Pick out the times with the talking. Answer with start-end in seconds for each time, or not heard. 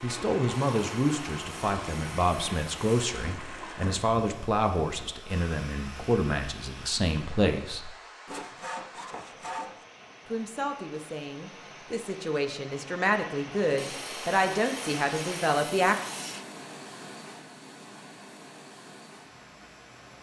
0.0-7.9, 10.2-15.9.